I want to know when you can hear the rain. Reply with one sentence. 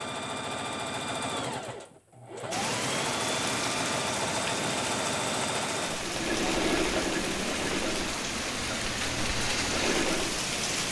The rain can be heard from 2.5 to 10.8 s.